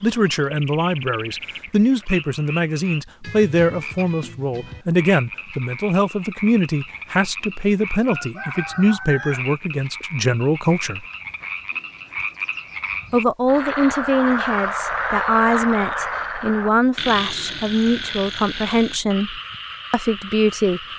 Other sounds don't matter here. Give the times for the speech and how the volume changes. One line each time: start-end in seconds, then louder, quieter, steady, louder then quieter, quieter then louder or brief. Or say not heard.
0.0-11.1 steady
13.1-20.8 steady.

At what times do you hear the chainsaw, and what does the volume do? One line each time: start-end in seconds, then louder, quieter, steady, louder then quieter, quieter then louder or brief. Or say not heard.
not heard.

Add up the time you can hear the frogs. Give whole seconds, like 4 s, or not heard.
21 s.